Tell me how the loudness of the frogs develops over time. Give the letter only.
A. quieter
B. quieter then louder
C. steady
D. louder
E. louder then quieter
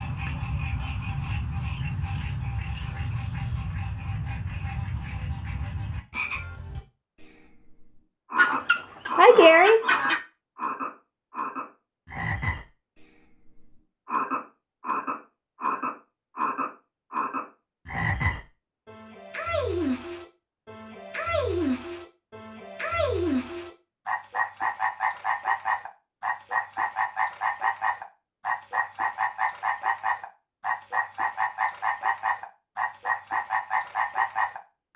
D.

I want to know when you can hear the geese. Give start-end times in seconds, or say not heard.
8.3-10.2.